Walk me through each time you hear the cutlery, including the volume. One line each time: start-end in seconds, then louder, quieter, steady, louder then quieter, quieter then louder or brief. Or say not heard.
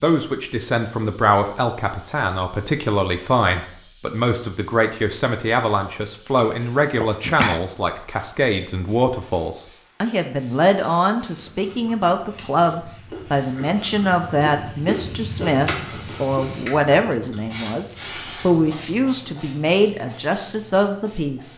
not heard.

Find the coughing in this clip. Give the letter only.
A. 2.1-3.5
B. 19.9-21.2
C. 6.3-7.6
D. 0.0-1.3
C.